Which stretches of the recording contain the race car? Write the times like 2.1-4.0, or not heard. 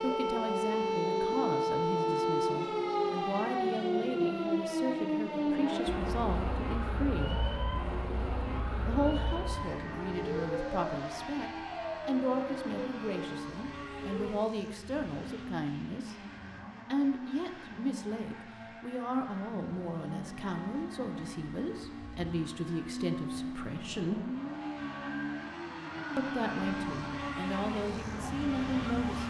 0.0-29.2.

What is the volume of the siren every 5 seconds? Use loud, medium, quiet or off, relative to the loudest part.
loud, medium, medium, off, off, medium.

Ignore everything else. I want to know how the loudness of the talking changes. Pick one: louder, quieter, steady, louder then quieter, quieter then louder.
steady.